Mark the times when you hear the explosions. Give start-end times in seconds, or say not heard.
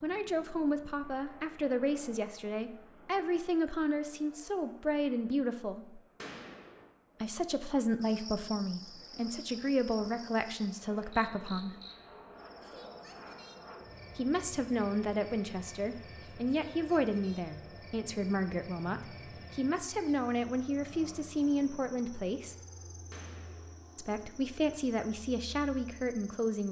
6.2-6.8, 23.1-23.8.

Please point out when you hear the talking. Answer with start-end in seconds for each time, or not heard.
0.0-6.0, 7.2-11.8, 14.2-22.6, 23.9-26.6.